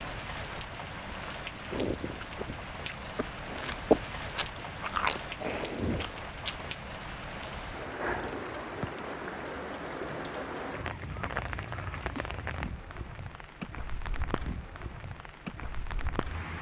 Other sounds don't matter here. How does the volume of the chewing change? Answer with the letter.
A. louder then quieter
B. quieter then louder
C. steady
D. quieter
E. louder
A.